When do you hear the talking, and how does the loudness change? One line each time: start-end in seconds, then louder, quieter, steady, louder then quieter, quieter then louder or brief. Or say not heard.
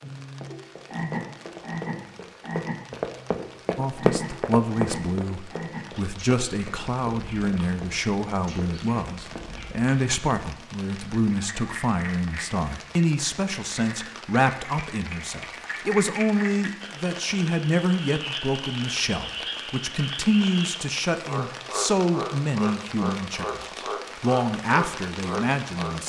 3.8-26.0 steady.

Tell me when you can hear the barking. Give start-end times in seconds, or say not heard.
not heard.